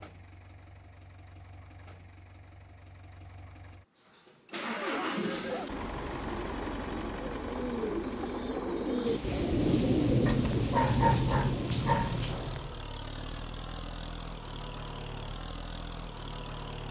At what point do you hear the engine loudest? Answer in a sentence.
The volume of the engine peaks at 5 seconds.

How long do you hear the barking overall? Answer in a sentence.
You can hear the barking for 4 seconds altogether.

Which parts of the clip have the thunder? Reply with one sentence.
The thunder can be heard from 9.1 to 12.5 s.